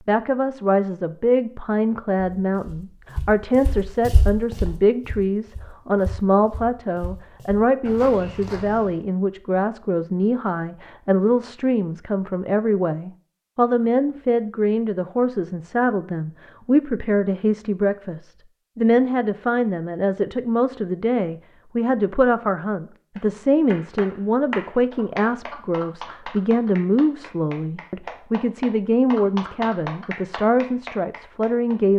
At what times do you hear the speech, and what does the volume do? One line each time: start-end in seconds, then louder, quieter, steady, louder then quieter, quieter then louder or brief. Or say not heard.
0.1-31.9 steady.